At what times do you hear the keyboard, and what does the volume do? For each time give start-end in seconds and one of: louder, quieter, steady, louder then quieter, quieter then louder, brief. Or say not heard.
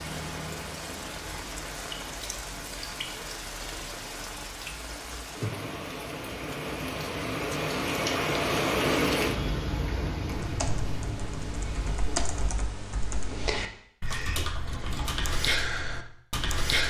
10.4-16.8 louder.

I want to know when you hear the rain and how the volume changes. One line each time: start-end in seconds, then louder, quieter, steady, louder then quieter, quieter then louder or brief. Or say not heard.
0.0-12.5 louder then quieter.